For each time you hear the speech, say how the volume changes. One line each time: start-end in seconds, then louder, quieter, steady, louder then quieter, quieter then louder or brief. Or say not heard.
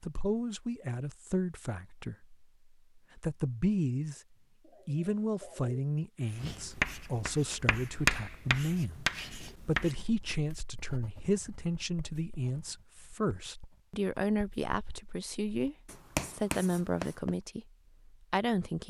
0.0-4.2 quieter then louder
4.8-18.8 steady.